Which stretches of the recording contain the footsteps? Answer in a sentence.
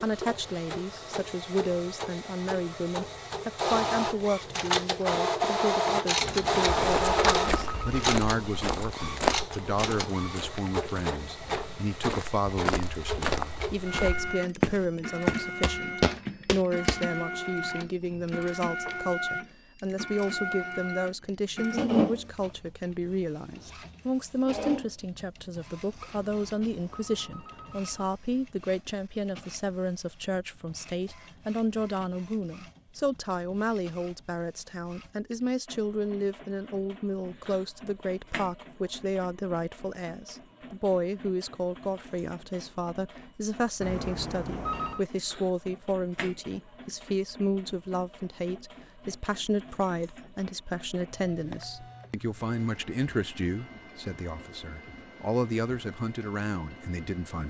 You can hear the footsteps from 6.9 to 17.0 s.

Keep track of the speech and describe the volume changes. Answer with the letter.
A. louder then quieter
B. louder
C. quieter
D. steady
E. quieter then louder
D.